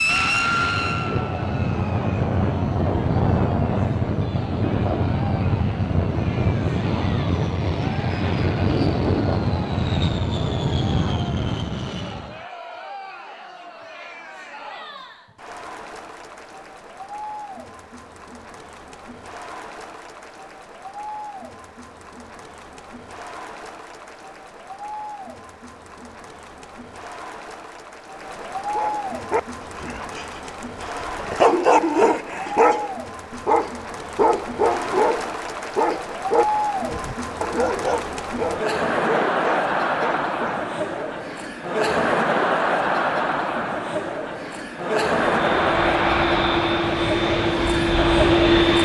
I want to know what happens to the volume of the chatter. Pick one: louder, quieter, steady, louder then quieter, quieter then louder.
louder.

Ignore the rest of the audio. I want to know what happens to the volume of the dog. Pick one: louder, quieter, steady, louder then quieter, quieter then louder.
louder then quieter.